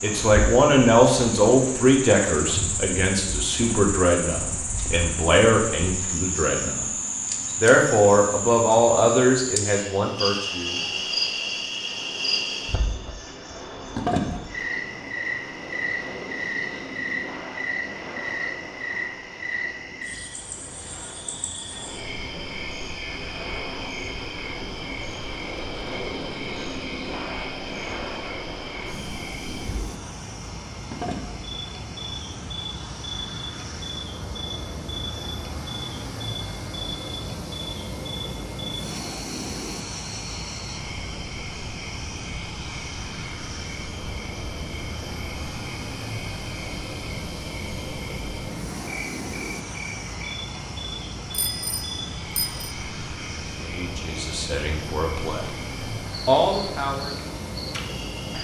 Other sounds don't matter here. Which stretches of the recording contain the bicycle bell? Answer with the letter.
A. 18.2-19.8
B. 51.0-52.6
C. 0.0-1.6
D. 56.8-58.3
B.